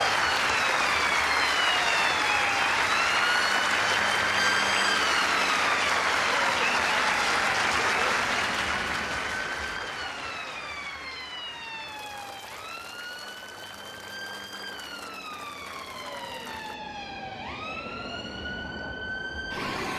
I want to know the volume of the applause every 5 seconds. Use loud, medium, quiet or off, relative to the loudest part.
loud, loud, quiet, quiet.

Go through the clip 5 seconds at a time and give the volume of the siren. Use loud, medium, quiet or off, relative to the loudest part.
loud, loud, medium, medium.